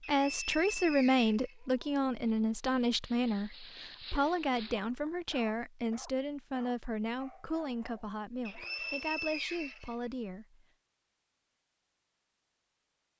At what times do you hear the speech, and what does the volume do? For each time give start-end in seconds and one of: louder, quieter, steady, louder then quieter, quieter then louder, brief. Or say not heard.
0.1-10.7 quieter.